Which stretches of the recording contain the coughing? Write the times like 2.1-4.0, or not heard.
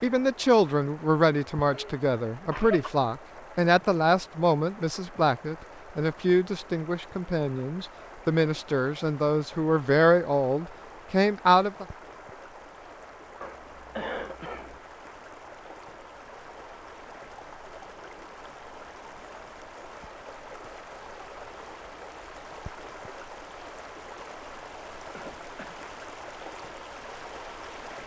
1.6-2.9, 13.4-14.8, 25.1-25.9.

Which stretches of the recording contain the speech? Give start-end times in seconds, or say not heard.
0.0-11.8.